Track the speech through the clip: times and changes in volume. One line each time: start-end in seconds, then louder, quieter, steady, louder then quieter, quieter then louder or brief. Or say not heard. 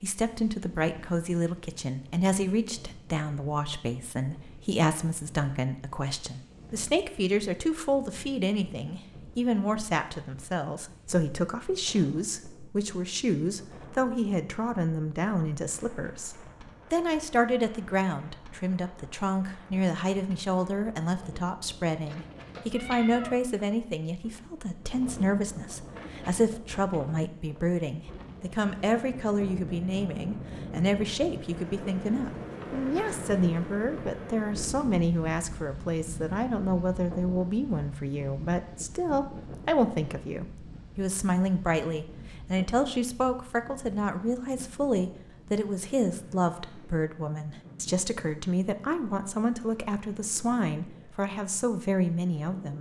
0.0-52.7 steady.